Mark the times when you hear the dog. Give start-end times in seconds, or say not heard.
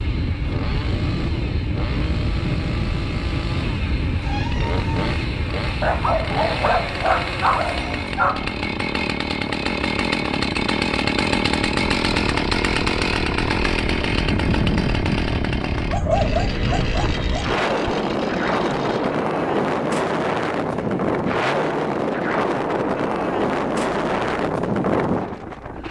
5.8-8.6, 15.8-17.6.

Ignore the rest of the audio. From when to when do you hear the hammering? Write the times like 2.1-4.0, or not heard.
not heard.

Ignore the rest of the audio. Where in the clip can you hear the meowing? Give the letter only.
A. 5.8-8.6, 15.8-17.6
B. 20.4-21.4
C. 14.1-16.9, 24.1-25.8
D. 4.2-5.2
D.